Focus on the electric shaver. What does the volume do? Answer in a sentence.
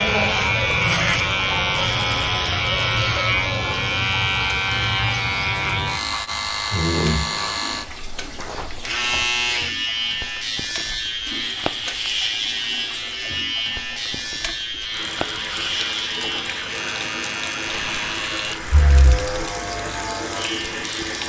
The volume of the electric shaver goes down.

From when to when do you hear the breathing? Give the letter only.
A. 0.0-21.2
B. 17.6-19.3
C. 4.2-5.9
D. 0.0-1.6
B.